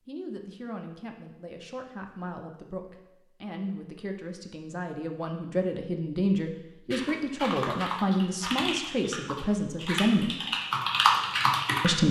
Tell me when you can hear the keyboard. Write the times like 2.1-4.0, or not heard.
6.9-11.9.